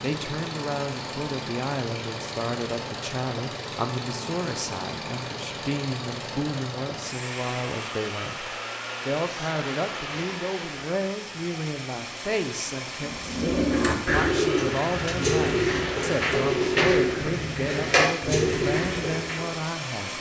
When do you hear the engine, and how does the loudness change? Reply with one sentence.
The engine can be heard from 0.0 to 20.1 s, at a steady volume.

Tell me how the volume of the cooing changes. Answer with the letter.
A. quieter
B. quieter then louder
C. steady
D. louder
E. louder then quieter
C.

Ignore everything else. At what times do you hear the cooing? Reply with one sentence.
The cooing can be heard from 13.0 to 19.5 s.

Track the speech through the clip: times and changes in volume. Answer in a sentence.
You can hear the speech from 0.0 to 20.1 s, at a steady volume.